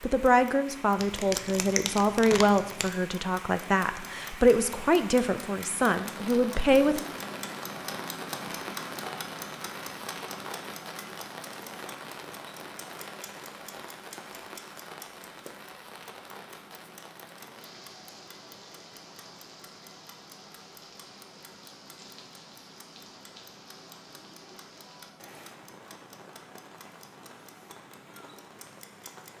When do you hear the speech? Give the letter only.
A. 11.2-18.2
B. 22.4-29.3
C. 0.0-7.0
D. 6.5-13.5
C.